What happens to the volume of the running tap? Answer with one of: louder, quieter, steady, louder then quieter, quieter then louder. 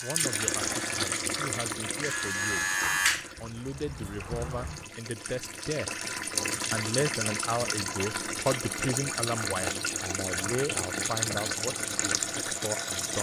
quieter then louder.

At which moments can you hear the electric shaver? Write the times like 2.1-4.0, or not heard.
0.0-4.8.